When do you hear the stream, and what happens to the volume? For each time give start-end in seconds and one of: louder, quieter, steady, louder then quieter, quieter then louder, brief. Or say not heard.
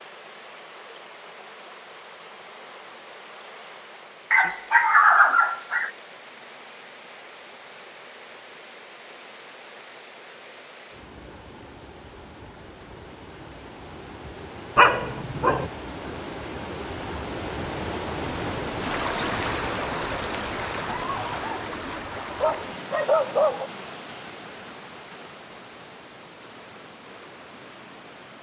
0.0-28.3 louder then quieter.